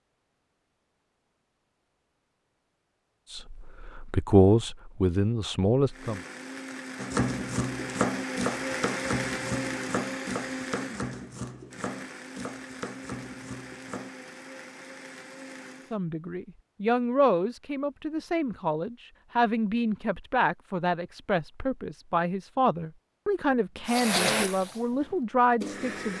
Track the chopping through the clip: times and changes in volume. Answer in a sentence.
The chopping can be heard from 7.0 to 14.2 s, getting quieter.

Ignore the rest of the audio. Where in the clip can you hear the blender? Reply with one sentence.
You can hear the blender from 5.8 to 15.9 s and from 23.9 to 26.1 s.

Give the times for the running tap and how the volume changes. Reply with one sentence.
The running tap can't be heard in this clip.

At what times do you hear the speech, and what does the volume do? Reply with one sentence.
The speech can be heard briefly from 3.3 to 6.2 s; and from 15.9 to 26.1 s, at a steady volume.